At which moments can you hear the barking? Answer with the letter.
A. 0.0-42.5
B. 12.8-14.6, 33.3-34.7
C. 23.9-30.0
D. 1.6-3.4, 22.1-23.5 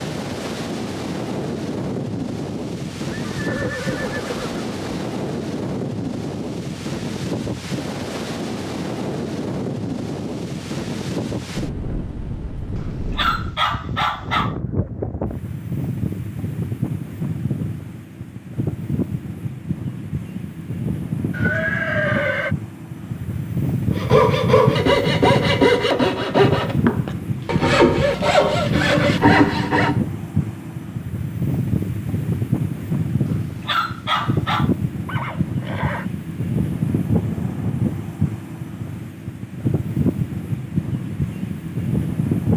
B.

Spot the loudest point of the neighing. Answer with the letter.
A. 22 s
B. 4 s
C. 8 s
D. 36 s
A.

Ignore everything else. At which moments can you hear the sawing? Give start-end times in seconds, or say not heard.
23.9-30.0.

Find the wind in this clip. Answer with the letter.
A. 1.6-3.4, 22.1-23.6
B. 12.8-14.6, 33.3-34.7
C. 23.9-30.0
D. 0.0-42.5
D.